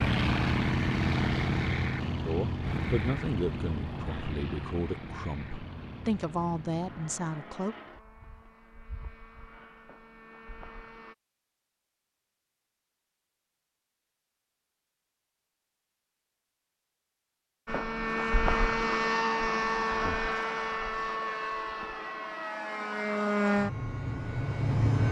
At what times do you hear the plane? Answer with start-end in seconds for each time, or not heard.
0.0-11.2, 17.6-25.0.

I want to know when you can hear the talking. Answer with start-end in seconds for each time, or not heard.
2.2-7.8.